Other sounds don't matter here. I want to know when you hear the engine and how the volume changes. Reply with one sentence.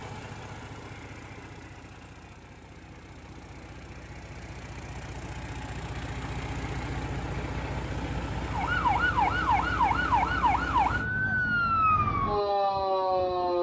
You can hear the engine from 0.0 to 11.1 s, getting louder.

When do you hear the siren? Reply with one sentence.
The siren can be heard from 8.5 to 13.5 s.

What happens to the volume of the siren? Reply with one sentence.
The volume of the siren stays about the same.